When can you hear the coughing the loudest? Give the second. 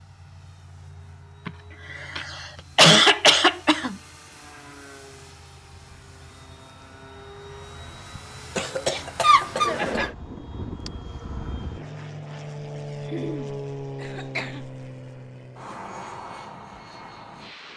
3 s.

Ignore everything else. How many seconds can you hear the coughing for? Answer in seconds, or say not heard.
6 s.